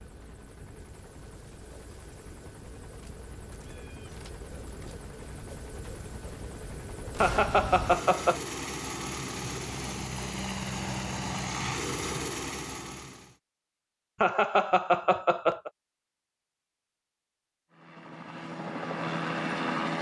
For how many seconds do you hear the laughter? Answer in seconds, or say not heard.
3 s.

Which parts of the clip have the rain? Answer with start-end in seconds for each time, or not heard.
not heard.